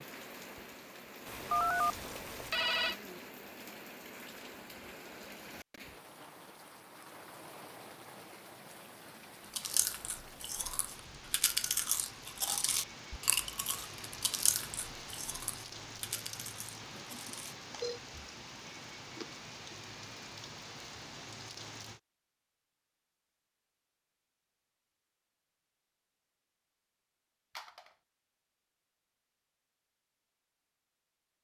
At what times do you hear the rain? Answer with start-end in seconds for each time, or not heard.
0.0-22.0.